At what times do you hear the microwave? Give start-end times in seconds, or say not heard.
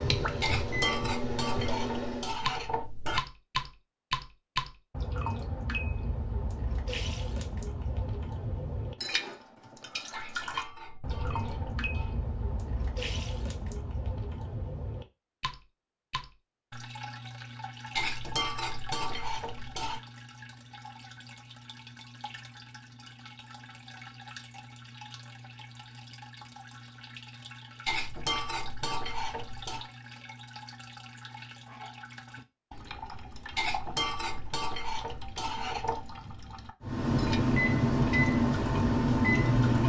0.0-2.4, 36.8-39.8.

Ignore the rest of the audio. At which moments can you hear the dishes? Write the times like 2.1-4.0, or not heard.
0.4-3.2, 10.1-12.2, 17.9-20.0, 27.9-29.9, 33.5-36.1.